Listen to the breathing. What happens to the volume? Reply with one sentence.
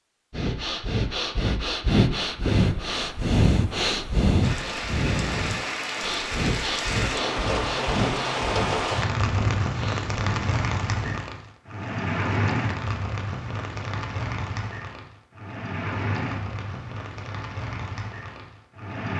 The volume of the breathing goes down.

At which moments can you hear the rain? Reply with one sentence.
You can hear the rain from 4.4 to 19.1 s.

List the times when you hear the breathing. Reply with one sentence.
You can hear the breathing from 0.3 to 11.2 s.